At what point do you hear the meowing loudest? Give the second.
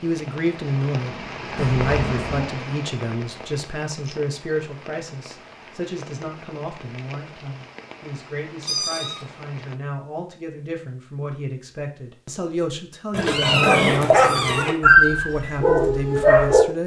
14 s.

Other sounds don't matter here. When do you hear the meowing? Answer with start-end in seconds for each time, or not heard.
1.6-2.5, 8.6-9.2, 13.1-14.8.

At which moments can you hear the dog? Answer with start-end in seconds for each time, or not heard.
13.6-16.6.